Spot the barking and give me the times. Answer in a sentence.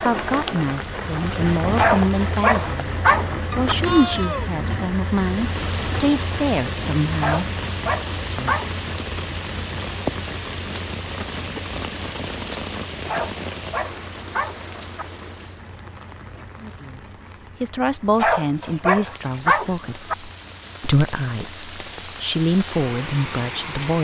You can hear the barking from 1.8 to 3.8 s, from 7.2 to 8.7 s, from 13.1 to 15.1 s and from 18.1 to 20.1 s.